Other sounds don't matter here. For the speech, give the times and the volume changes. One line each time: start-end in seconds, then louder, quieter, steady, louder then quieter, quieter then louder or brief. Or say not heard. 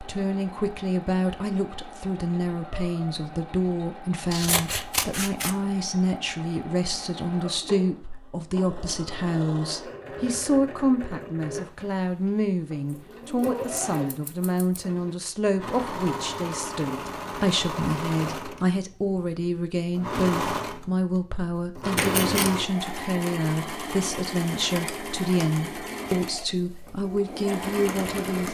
0.0-28.4 steady.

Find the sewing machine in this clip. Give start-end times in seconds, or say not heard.
0.0-28.4.